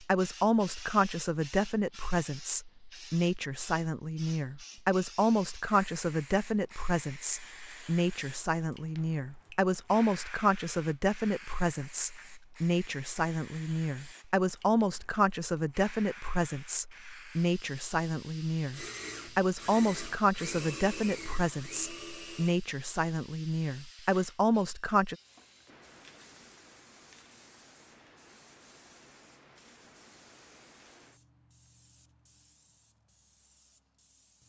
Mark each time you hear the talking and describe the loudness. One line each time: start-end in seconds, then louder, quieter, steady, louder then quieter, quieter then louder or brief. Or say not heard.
0.0-25.1 steady.